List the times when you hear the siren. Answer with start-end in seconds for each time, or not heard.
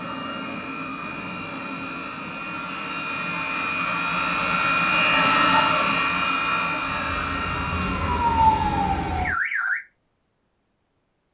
6.8-9.8.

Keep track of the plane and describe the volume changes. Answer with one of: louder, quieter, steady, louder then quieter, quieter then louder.
louder then quieter.